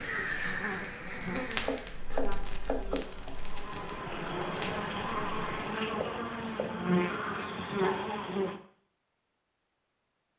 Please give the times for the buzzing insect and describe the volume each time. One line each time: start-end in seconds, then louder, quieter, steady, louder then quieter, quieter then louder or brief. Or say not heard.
0.0-8.6 quieter then louder.